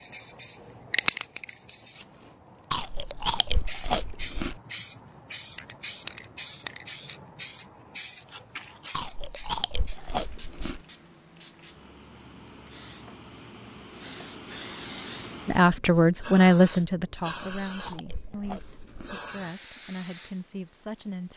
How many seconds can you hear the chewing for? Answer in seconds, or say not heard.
6 s.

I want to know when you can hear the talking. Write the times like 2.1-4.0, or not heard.
15.4-21.3.